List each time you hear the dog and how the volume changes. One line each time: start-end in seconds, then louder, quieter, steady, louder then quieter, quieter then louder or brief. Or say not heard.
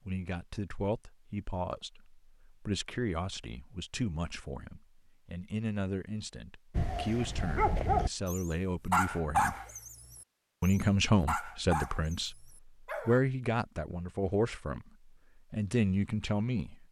6.8-13.2 quieter.